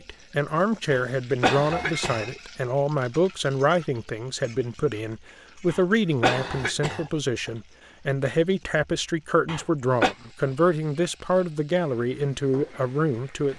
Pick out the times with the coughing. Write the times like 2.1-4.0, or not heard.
0.9-2.2, 5.7-7.0, 9.4-10.2.